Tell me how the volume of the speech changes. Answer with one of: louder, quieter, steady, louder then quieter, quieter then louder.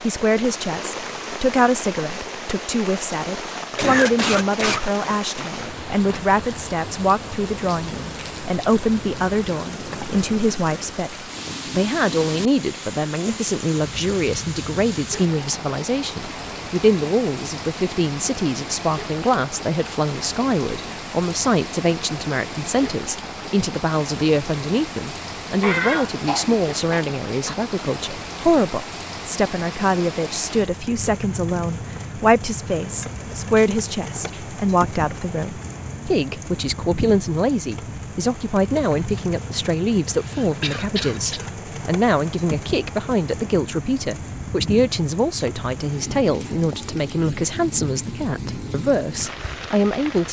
steady.